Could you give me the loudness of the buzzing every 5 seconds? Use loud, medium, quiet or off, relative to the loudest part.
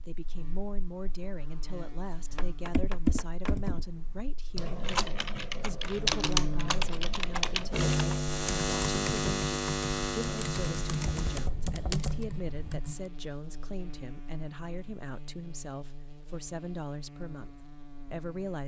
quiet, loud, medium, quiet.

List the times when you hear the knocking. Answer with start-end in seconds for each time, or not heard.
2.4-3.5, 11.1-12.8.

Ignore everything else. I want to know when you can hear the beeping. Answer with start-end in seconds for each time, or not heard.
not heard.